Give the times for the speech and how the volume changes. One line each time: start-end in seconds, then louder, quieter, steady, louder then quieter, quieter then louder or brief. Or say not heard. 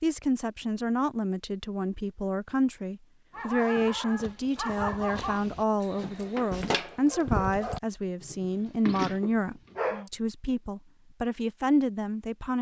0.0-12.5 steady.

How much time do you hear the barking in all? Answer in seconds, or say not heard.
7 s.